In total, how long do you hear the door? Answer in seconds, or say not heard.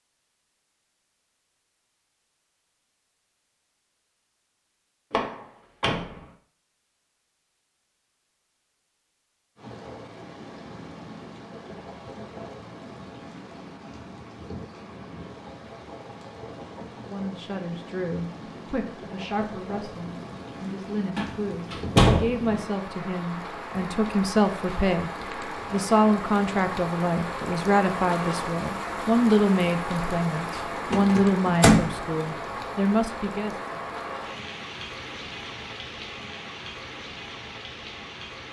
3 s.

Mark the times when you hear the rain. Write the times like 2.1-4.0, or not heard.
9.6-38.4.